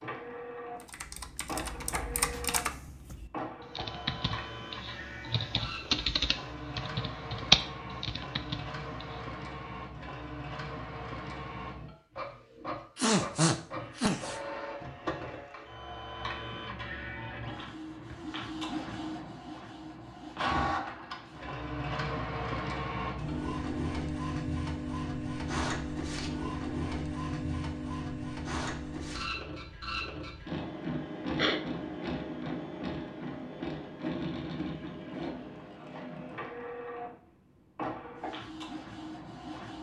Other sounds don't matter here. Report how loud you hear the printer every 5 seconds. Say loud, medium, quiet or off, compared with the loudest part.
medium, medium, medium, medium, loud, loud, loud, medium.